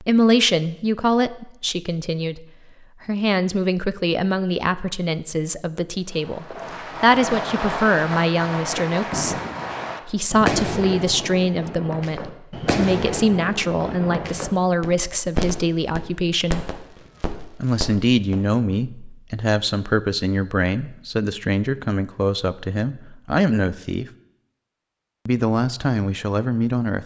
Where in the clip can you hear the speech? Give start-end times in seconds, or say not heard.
0.0-2.5, 3.0-9.4, 10.1-16.6, 17.6-24.1, 25.2-27.0.